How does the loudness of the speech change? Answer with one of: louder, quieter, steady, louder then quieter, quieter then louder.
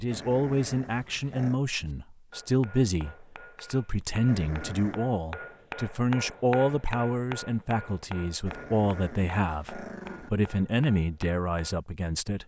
steady.